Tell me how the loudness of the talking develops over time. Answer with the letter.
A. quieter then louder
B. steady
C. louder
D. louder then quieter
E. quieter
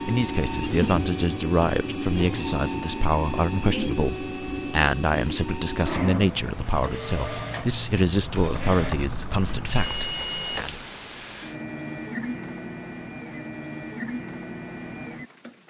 B.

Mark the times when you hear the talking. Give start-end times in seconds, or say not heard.
0.1-10.8.